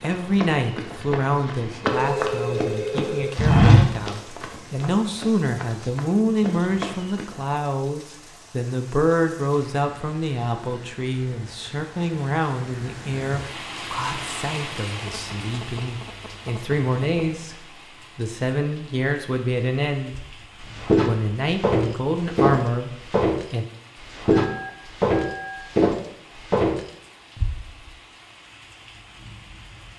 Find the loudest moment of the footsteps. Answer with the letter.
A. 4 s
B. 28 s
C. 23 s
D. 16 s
A.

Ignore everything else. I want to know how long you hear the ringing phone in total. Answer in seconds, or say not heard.
5 s.